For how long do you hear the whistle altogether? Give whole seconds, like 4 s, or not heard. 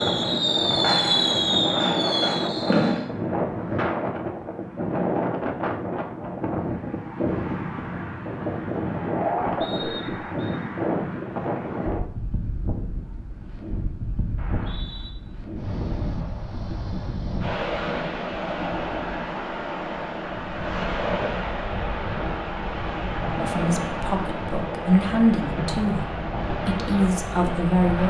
2 s.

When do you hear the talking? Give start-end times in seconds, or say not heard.
23.4-28.0.